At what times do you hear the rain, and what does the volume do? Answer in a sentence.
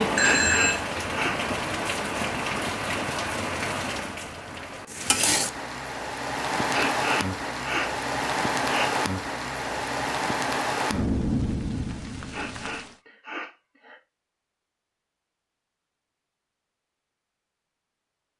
The rain can be heard from 0.0 to 12.9 s, at a steady volume.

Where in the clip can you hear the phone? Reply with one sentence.
You can hear the phone from 0.1 to 0.8 s.